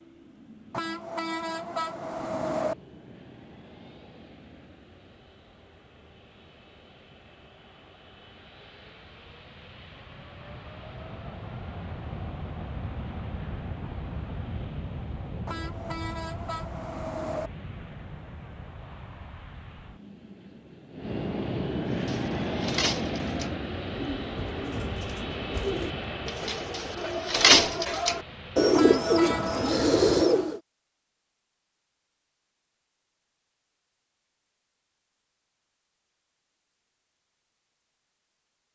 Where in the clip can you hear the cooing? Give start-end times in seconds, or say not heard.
21.9-30.6.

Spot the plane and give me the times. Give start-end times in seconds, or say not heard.
0.0-30.2.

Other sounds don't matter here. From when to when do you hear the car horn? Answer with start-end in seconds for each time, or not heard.
0.7-2.8, 15.4-17.5, 28.8-29.5.